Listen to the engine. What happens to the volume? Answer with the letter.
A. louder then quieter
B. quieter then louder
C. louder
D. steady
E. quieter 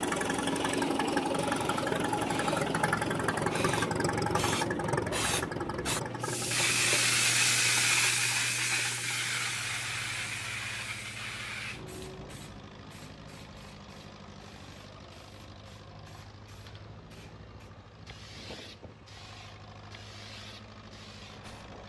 E.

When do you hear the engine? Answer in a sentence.
You can hear the engine from 0.0 to 21.8 s.